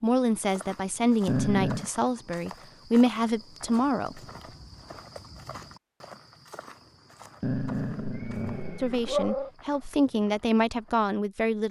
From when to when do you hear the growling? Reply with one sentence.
The growling can be heard from 1.2 to 1.9 s and from 7.4 to 9.5 s.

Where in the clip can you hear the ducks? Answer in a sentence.
The ducks can't be heard in this clip.